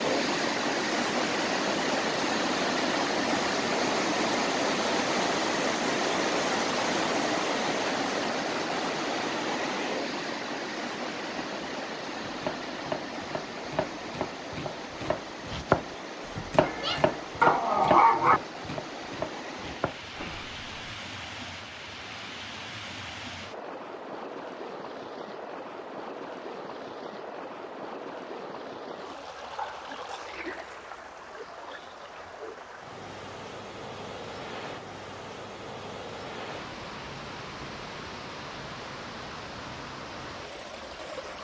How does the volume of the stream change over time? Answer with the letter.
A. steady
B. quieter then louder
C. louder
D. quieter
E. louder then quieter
D.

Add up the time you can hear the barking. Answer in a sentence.
The barking can be heard for 2 seconds in total.